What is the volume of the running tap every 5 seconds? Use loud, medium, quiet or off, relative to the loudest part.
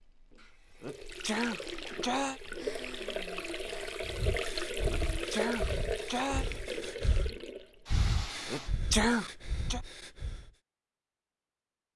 loud, loud, off.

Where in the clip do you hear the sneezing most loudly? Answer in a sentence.
The loudest moment of the sneezing is at 9 seconds.